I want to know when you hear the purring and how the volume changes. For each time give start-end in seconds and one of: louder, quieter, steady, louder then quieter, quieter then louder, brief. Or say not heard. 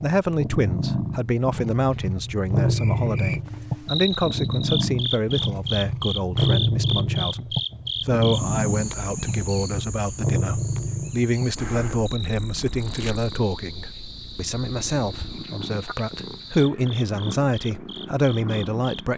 0.0-19.1 quieter.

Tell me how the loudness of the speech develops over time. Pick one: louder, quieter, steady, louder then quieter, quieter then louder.
steady.